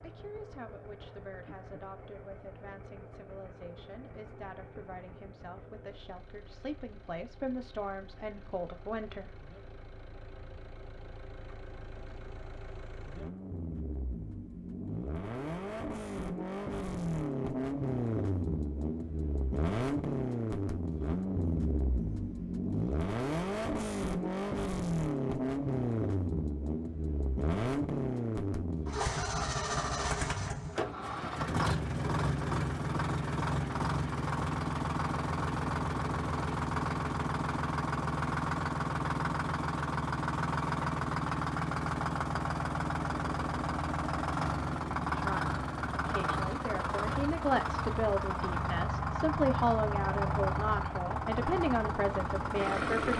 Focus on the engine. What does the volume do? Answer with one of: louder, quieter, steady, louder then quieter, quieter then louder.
louder.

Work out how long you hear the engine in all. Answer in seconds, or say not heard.
53 s.